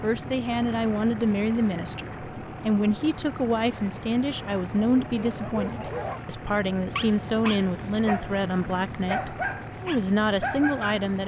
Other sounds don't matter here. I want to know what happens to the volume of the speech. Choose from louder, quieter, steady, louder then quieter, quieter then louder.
steady.